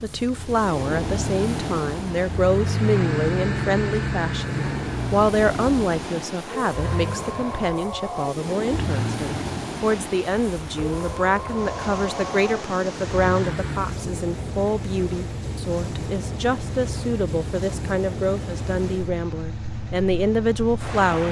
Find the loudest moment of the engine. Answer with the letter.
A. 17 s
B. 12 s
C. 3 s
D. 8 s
C.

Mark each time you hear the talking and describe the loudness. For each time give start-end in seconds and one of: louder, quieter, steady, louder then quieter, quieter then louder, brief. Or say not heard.
0.0-21.2 steady.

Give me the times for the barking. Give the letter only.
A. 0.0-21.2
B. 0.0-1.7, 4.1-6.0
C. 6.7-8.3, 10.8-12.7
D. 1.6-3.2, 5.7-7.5
C.